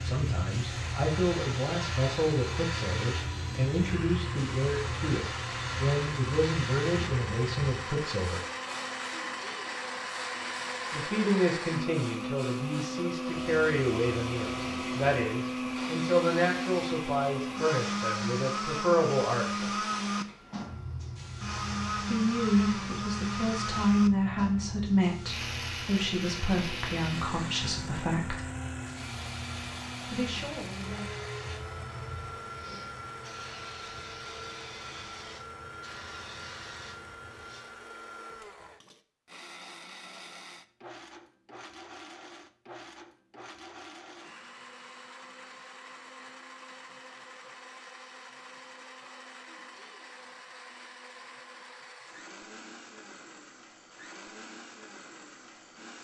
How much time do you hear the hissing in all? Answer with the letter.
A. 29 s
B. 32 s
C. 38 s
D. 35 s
C.